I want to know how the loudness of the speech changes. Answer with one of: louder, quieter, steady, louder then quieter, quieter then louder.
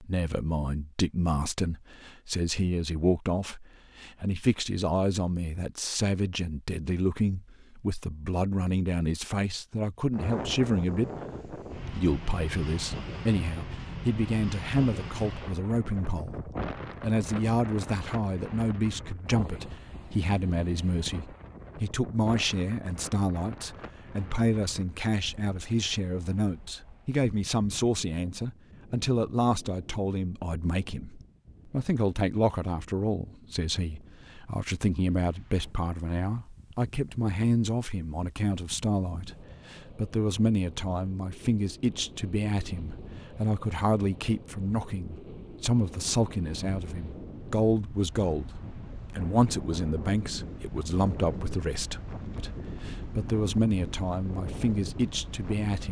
steady.